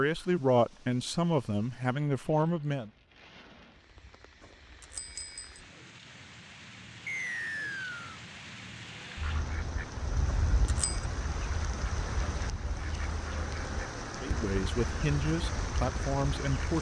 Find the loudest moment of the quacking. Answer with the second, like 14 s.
10 s.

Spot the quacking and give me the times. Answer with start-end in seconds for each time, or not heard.
9.2-16.6.